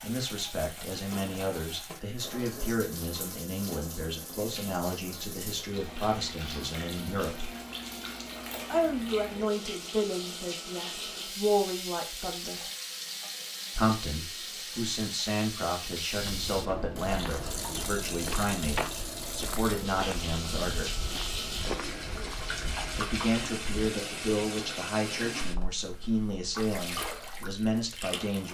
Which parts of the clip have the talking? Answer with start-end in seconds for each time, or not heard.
0.0-7.5, 8.7-12.6, 13.8-20.9, 22.9-28.4.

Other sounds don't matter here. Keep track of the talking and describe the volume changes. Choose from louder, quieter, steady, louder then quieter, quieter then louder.
steady.